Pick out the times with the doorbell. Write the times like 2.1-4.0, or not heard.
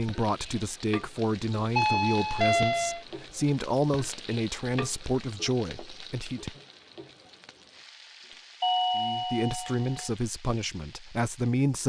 1.8-3.0, 8.6-10.1.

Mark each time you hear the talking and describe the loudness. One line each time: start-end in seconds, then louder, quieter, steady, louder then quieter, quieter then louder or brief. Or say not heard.
0.0-6.6 steady
8.9-11.8 brief.